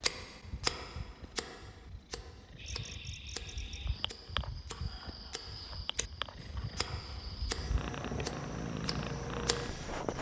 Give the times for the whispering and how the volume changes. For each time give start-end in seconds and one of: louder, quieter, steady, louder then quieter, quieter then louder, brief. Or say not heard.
not heard.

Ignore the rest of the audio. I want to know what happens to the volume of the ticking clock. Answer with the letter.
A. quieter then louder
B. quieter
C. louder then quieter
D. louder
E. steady
A.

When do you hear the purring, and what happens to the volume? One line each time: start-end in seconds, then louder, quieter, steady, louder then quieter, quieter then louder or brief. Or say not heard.
0.0-10.1 louder.